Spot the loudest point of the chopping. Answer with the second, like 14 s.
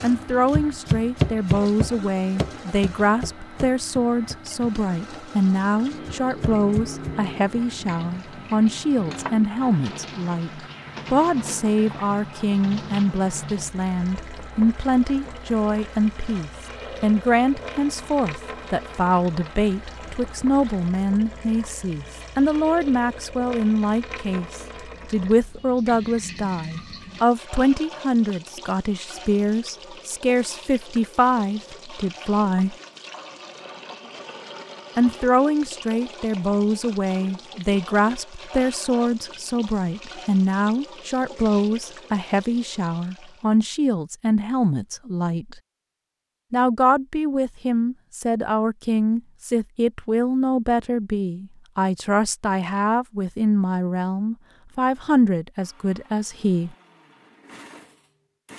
1 s.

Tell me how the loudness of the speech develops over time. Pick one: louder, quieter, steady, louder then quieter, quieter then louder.
steady.